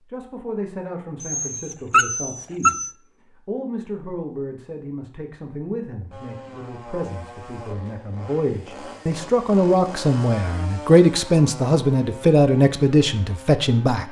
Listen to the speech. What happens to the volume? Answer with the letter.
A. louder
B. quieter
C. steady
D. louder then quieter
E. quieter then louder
A.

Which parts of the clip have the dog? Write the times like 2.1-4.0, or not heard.
1.2-2.9.